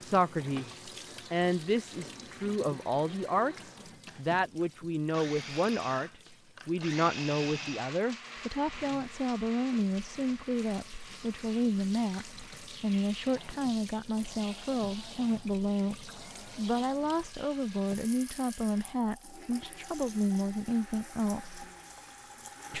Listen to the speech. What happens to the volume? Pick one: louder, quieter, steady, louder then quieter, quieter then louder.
steady.